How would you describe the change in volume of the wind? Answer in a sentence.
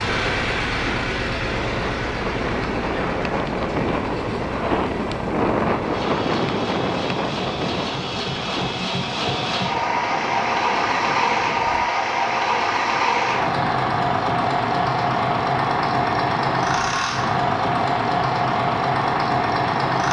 The loudness of the wind goes up, then down.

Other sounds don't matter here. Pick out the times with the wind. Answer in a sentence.
The wind can be heard from 0.0 to 11.9 s.